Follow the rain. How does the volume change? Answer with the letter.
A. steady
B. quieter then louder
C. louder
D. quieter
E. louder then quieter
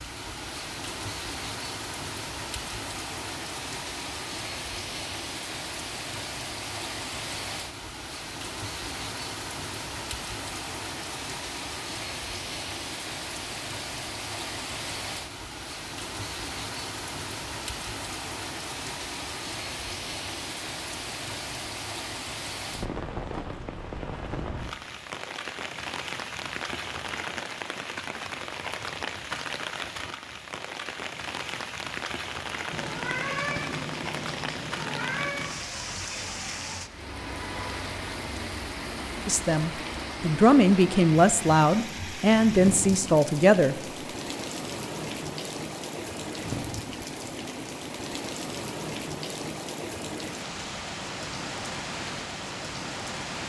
A.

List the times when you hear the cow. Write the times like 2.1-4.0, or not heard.
not heard.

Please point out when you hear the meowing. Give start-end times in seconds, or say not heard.
32.7-35.5.